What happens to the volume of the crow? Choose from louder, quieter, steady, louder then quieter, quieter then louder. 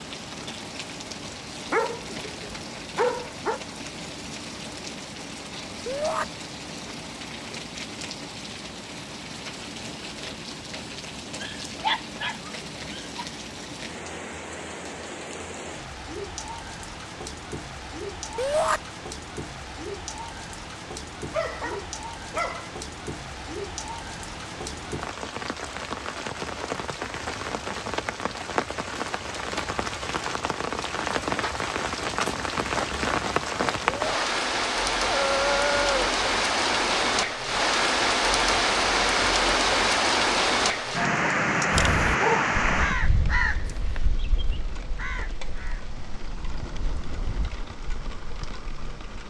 quieter.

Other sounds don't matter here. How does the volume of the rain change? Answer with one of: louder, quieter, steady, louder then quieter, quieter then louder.
louder.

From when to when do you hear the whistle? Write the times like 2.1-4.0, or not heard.
not heard.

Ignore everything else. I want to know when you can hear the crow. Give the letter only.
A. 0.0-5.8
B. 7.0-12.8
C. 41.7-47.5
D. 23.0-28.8
C.